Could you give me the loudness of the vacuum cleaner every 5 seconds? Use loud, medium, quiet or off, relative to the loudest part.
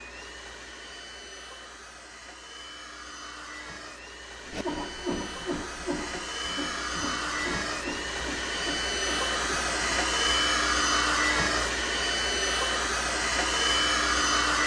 quiet, medium, loud.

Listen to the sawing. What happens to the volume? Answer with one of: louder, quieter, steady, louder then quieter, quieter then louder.
quieter.